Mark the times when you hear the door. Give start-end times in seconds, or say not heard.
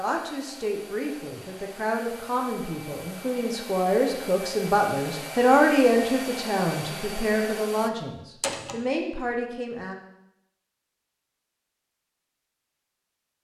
8.4-8.8.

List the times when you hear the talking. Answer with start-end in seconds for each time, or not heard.
0.0-9.9.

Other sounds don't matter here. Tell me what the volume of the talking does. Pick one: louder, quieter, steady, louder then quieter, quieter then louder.
louder then quieter.